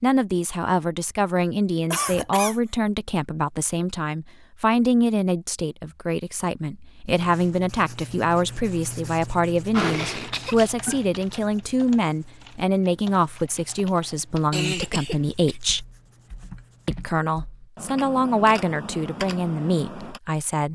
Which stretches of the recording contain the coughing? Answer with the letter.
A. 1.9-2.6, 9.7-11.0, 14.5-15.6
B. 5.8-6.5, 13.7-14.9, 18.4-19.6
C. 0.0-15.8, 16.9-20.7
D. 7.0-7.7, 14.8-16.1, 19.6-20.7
A.